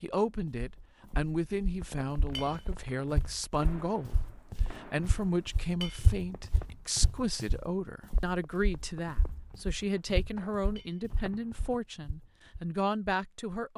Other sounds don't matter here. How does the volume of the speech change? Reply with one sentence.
The loudness of the speech stays about the same.